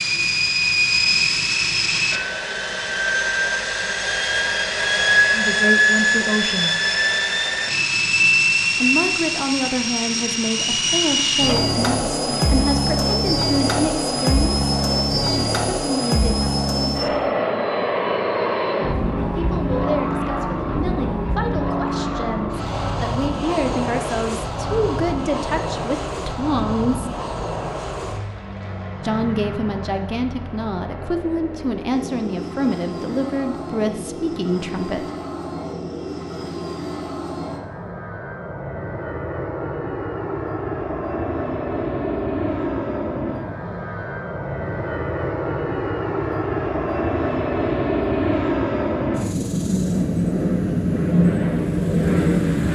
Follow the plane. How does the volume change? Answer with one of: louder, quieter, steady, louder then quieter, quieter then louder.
quieter then louder.